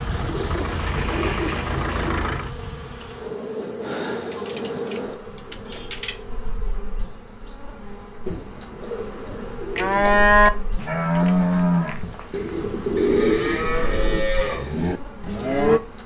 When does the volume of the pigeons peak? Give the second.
13 s.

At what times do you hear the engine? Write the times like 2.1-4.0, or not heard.
0.0-2.5.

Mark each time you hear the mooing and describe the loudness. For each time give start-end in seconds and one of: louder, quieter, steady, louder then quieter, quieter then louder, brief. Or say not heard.
9.8-15.8 quieter then louder.